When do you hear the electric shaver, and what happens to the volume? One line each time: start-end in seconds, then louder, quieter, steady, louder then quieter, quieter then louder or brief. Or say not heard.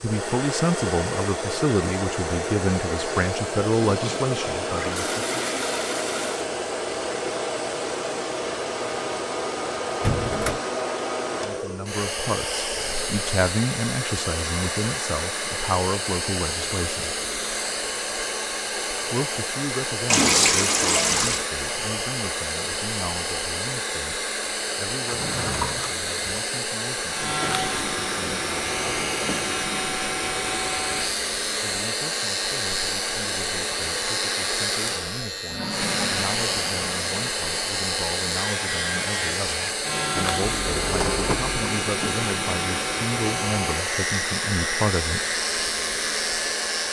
27.1-46.8 steady.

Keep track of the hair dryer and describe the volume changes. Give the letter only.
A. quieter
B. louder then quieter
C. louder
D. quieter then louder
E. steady
E.